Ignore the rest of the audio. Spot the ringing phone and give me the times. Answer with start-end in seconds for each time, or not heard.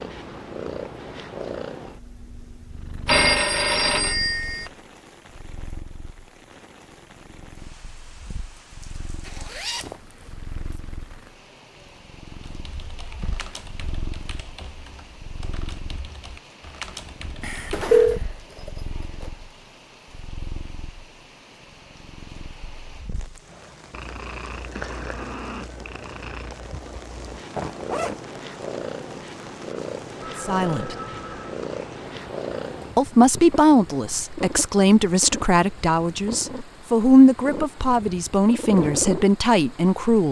3.0-4.7, 17.4-18.2, 30.2-31.6.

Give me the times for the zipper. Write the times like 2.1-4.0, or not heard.
9.2-10.2, 17.7-19.3, 27.6-28.2.